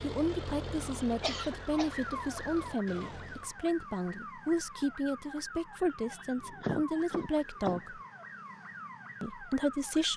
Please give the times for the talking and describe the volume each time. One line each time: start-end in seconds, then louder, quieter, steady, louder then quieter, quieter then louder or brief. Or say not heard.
0.0-8.0 steady
9.2-10.1 brief.